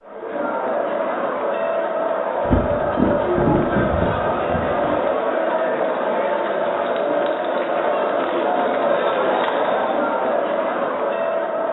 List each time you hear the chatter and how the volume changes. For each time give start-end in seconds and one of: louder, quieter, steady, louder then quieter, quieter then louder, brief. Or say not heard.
0.0-11.6 steady.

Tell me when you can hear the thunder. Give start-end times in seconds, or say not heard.
2.5-5.0.